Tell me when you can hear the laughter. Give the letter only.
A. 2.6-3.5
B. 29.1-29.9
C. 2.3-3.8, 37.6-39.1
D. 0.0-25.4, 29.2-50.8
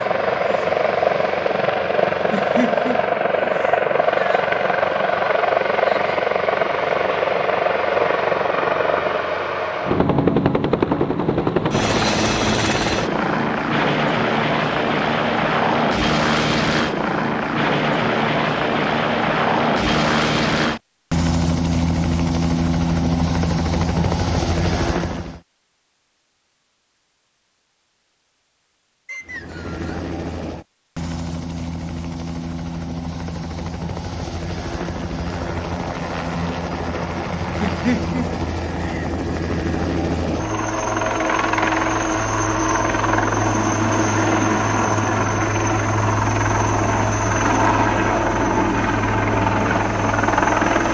C.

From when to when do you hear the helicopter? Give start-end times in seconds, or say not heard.
0.0-25.4, 29.2-50.8.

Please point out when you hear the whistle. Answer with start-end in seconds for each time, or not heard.
29.1-29.9.